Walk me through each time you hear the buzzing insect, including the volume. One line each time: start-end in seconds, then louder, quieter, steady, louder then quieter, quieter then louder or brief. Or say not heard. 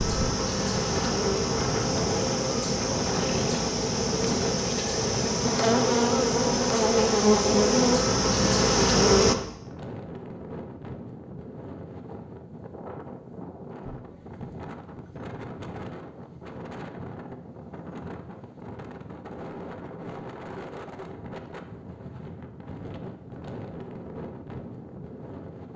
0.0-9.3 louder.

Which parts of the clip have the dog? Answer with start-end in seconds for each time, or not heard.
not heard.